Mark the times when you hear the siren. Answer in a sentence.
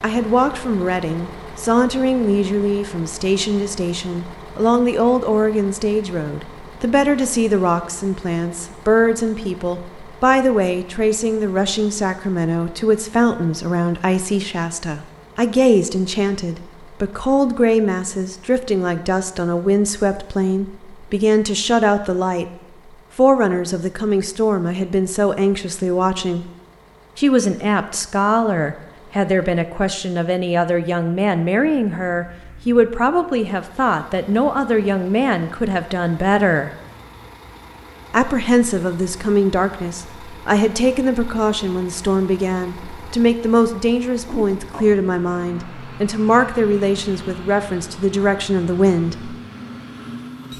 You can't hear the siren here.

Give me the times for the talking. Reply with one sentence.
You can hear the talking from 0.0 to 22.4 s, from 23.1 to 26.4 s, from 27.1 to 36.7 s and from 38.1 to 49.4 s.